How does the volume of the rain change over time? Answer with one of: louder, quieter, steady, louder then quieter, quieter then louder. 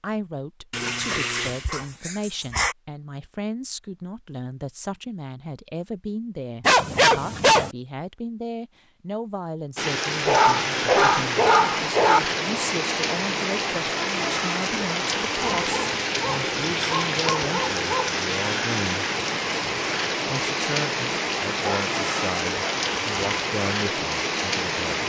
steady.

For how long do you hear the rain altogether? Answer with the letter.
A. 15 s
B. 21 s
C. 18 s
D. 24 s
A.